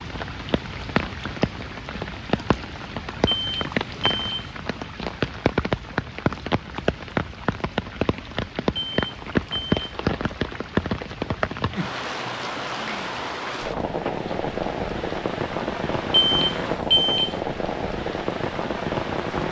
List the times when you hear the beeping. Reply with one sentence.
The beeping can be heard from 3.2 to 4.5 s, from 8.8 to 9.8 s and from 16.1 to 17.4 s.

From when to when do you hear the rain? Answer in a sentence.
The rain can be heard from 0.0 to 19.4 s.